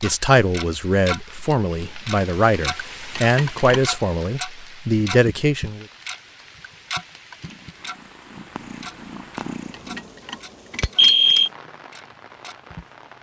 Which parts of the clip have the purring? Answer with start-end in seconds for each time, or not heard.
7.5-10.1.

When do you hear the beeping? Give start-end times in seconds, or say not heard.
3.1-3.8, 9.9-11.5.